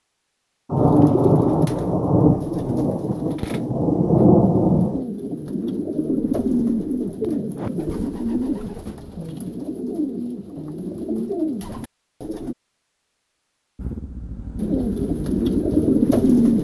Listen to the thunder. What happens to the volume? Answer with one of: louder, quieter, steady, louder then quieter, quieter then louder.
quieter then louder.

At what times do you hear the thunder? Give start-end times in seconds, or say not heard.
0.7-5.0.